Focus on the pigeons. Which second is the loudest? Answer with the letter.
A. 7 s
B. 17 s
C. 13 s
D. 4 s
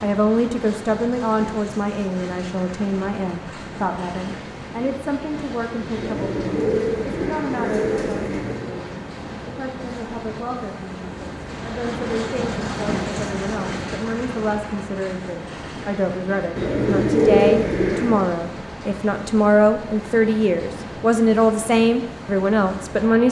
B.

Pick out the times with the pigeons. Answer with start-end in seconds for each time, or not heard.
6.0-8.7, 16.6-18.2.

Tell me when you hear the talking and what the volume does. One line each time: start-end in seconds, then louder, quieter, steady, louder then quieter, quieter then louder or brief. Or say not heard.
0.0-23.2 quieter then louder.